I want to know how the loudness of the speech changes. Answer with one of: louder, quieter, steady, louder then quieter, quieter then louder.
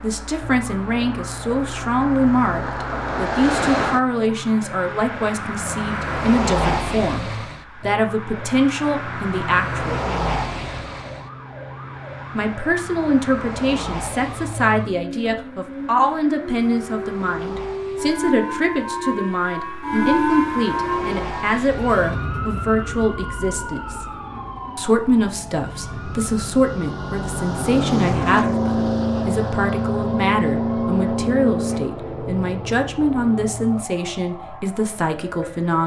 steady.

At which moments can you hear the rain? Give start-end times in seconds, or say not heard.
not heard.